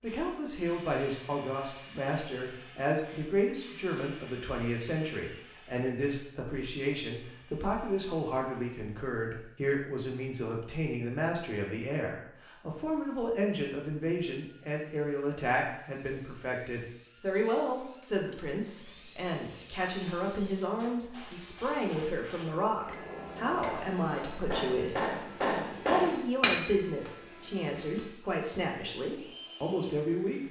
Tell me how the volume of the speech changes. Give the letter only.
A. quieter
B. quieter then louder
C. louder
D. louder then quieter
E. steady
E.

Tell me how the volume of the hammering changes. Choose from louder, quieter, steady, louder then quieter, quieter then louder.
louder.